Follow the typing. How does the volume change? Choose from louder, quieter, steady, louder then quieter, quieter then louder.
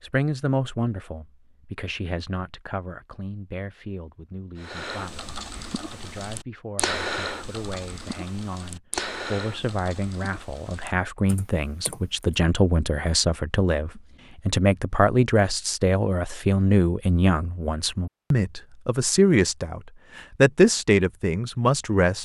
louder then quieter.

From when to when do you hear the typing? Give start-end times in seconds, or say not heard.
4.5-12.3.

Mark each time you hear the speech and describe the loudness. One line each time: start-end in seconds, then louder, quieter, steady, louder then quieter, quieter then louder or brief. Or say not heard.
0.0-22.1 quieter then louder.